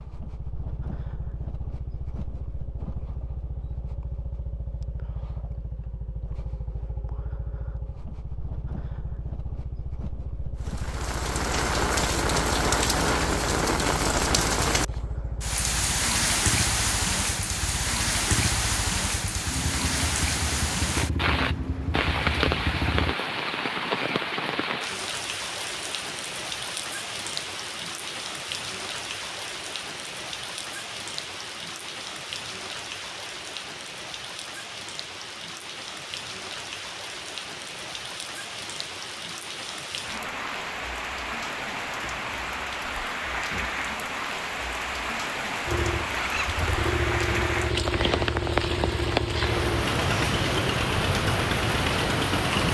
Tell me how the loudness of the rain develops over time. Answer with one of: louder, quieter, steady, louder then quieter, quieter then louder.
quieter then louder.